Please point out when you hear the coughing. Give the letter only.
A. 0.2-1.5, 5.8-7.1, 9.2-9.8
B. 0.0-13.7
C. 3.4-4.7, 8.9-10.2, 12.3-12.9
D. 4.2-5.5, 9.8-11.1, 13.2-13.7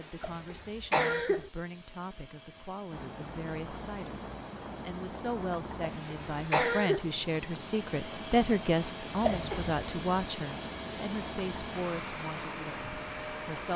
A.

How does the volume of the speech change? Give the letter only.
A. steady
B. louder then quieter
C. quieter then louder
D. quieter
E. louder
B.